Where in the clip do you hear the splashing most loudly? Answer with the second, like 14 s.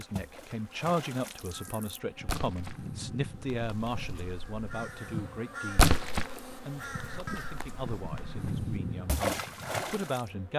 6 s.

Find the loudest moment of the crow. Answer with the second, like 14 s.
9 s.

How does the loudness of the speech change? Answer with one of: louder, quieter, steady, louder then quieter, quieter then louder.
quieter.